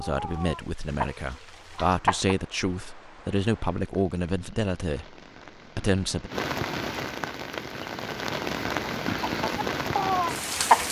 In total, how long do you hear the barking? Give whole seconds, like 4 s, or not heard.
not heard.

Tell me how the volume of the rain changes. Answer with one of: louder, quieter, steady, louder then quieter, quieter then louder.
louder.